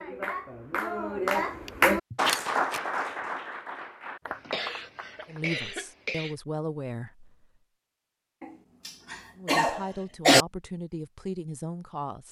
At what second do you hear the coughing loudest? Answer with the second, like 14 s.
10 s.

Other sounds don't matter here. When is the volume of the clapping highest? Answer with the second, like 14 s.
2 s.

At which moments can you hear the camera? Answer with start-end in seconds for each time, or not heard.
2.2-2.8.